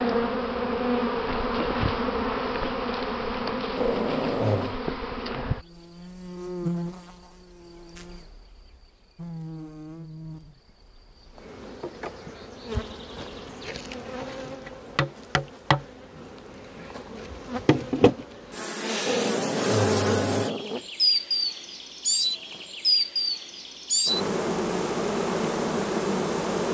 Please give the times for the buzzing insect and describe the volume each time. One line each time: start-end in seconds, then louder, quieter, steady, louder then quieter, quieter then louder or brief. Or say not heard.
0.0-26.6 quieter then louder.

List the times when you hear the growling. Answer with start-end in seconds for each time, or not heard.
3.8-4.8, 19.1-20.9.